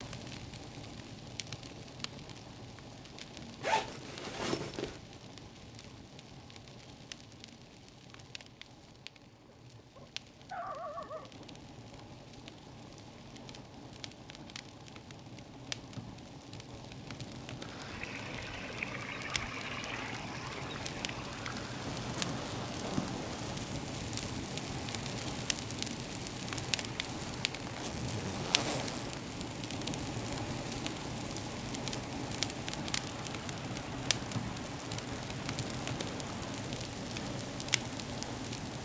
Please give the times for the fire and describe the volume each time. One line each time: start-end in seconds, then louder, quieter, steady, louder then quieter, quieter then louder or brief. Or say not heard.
0.0-38.8 louder.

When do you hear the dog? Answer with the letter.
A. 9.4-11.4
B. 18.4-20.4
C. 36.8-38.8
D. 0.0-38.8
A.